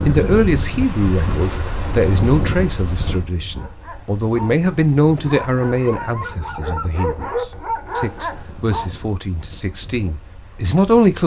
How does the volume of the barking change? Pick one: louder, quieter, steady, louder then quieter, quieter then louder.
louder.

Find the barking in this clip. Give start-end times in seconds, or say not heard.
3.5-9.1.